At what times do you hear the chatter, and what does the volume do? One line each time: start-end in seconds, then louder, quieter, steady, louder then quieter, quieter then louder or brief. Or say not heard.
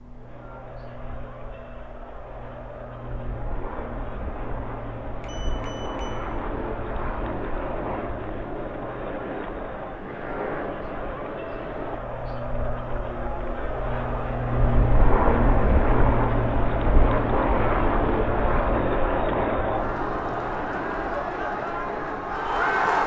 0.0-23.0 louder.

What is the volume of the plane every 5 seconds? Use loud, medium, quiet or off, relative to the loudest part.
quiet, medium, medium, loud, medium.